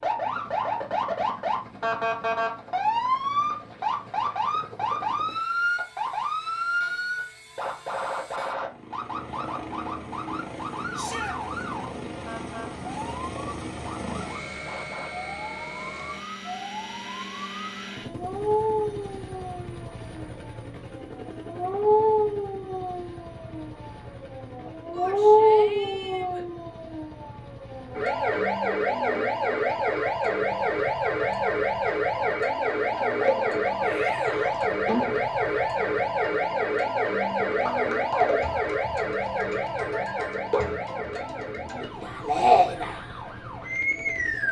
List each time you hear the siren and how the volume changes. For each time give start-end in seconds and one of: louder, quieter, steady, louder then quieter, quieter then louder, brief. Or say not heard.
0.0-44.4 quieter then louder.